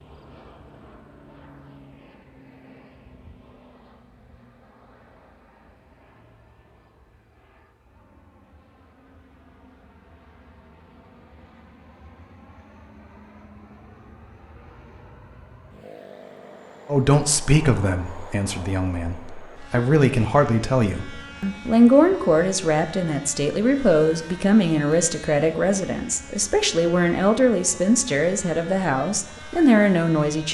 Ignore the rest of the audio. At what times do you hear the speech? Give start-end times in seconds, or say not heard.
16.9-30.4.